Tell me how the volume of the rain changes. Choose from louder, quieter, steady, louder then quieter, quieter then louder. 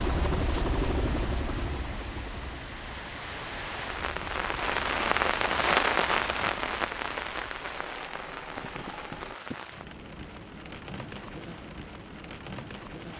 louder then quieter.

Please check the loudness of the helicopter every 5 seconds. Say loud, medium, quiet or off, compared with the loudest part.
loud, medium, off.